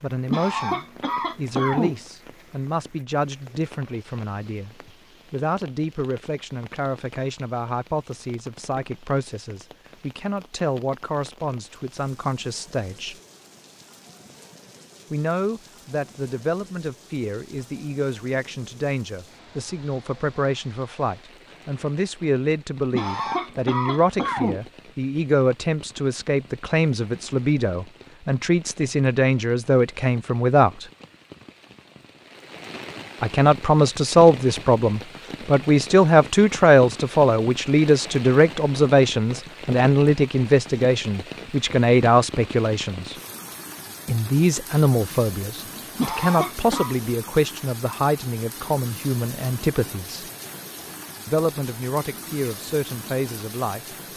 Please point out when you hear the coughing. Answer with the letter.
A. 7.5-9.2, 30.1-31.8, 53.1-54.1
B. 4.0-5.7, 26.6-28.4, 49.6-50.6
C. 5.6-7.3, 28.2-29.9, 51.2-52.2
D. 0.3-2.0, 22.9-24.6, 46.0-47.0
D.